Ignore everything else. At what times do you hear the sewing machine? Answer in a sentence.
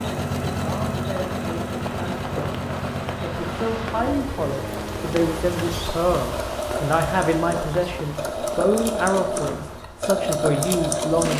The sewing machine can be heard from 0.0 to 11.3 s.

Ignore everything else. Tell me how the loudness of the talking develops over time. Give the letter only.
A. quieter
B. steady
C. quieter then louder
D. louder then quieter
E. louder
E.